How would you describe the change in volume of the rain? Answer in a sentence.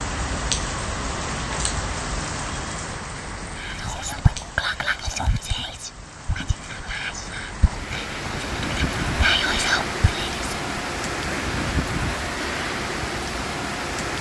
The volume of the rain goes down, then up.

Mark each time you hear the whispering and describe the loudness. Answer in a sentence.
You can hear the whispering from 3.5 to 10.6 s, getting quieter then louder.